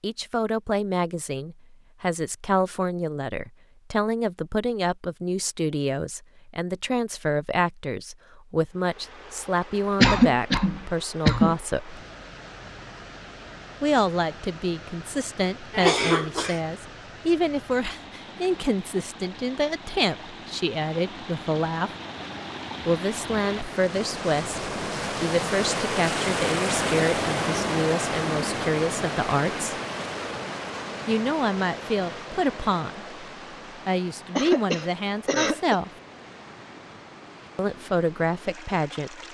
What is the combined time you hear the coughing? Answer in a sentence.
You can hear the coughing for 4 seconds altogether.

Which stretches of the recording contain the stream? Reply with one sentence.
The stream can be heard from 8.7 to 39.2 s.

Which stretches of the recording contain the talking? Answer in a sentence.
You can hear the talking from 0.0 to 12.0 s, from 13.8 to 21.9 s, from 22.9 to 29.8 s, from 31.1 to 33.0 s, from 33.9 to 35.9 s and from 37.5 to 39.2 s.